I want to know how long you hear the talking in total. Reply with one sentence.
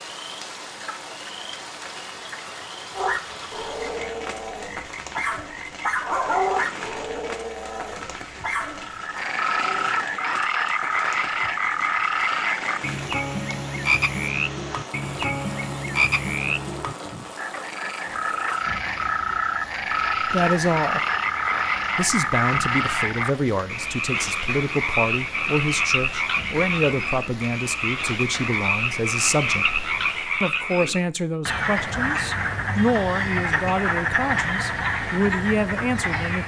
You can hear the talking for 15 seconds altogether.